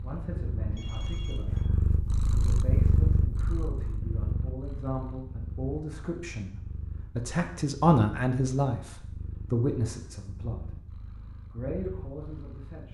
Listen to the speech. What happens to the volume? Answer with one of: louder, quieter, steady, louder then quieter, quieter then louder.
louder then quieter.